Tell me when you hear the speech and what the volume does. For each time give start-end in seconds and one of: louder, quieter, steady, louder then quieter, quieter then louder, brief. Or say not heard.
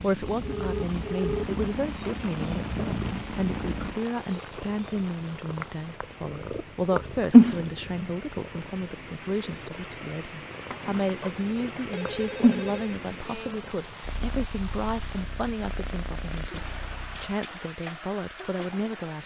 0.0-19.2 steady.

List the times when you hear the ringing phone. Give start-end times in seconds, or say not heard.
0.4-1.6, 10.5-13.0.